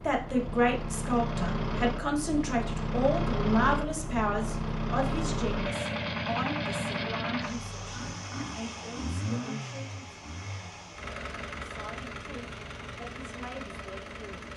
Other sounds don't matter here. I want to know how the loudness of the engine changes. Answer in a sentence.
The loudness of the engine goes down.